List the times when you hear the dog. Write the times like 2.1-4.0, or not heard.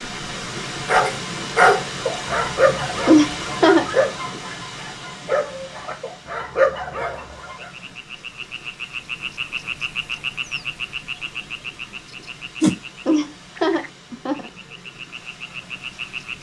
0.8-7.5.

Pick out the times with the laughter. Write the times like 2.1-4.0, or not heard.
3.0-3.9, 13.1-14.5.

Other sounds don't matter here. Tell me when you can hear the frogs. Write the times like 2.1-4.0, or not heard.
7.5-16.3.